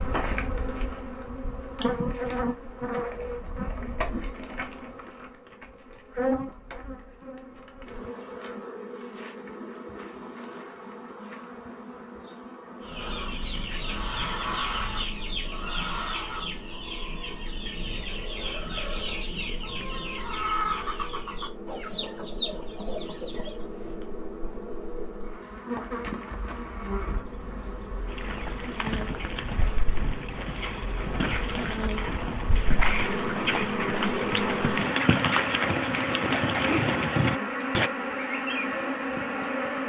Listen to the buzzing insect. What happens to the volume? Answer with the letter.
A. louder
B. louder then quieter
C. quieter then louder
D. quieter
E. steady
C.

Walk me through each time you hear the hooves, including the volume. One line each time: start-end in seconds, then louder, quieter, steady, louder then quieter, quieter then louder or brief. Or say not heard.
28.1-37.9 louder.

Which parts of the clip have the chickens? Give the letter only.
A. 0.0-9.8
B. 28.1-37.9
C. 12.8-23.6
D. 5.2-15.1
C.